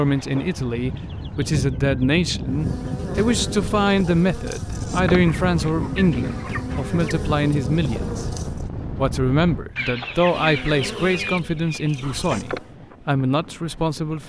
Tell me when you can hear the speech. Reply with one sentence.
You can hear the speech from 0.0 to 14.2 s.